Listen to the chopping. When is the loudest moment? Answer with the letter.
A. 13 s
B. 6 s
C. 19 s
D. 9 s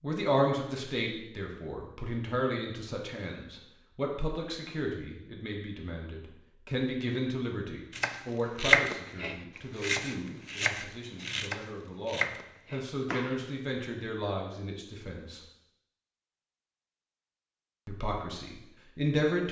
D.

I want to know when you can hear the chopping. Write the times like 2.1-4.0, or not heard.
7.9-13.6.